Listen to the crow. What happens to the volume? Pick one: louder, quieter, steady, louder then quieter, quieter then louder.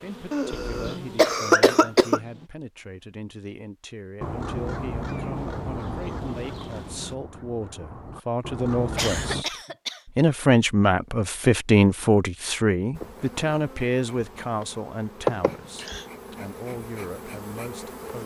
quieter then louder.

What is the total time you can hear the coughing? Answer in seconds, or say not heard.
4 s.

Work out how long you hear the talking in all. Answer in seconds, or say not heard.
18 s.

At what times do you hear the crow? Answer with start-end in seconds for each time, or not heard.
4.2-9.4.